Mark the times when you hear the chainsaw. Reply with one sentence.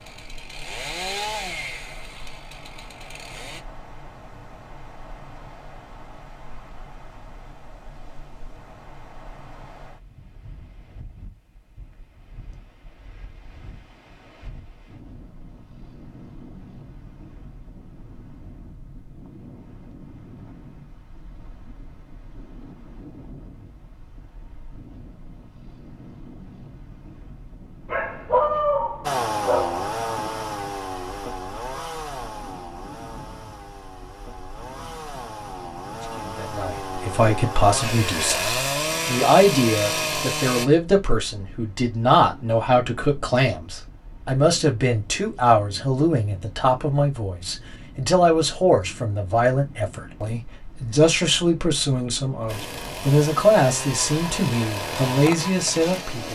You can hear the chainsaw from 0.0 to 3.6 s, from 29.0 to 40.7 s and from 52.5 to 56.3 s.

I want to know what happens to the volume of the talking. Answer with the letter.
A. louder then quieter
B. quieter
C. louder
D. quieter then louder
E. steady
E.